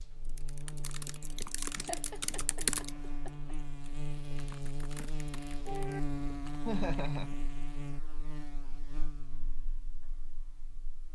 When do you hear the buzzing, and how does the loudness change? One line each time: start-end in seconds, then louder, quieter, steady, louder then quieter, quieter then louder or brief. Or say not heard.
0.0-11.0 louder then quieter.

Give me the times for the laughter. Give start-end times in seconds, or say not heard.
1.8-3.5, 6.7-7.3.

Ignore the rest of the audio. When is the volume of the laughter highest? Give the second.
7 s.